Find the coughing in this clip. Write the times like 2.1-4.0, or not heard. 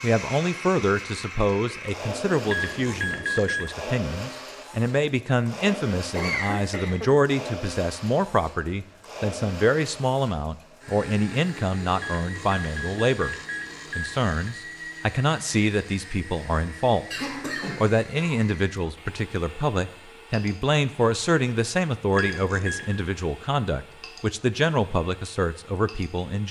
6.2-7.1, 17.1-18.4.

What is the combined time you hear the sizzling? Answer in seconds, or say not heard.
not heard.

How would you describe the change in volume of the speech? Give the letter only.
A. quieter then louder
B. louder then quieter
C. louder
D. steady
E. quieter
D.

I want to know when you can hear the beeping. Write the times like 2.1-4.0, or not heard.
2.5-3.8, 11.9-14.3, 22.1-23.0.